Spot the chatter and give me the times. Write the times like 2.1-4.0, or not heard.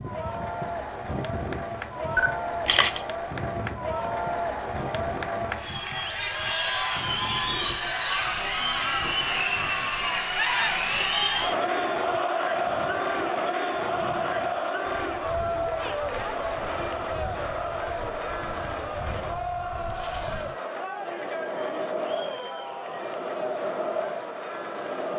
0.0-25.1.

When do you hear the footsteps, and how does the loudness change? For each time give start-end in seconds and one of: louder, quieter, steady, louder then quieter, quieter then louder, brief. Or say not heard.
not heard.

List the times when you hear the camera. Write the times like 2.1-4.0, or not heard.
2.1-3.0, 9.7-10.2, 19.9-20.6.